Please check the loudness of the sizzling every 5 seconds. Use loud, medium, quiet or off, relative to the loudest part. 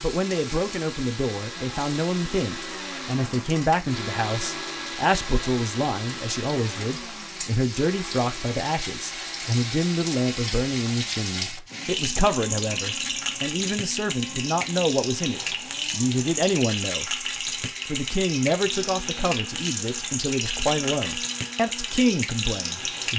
medium, medium, loud, loud, loud.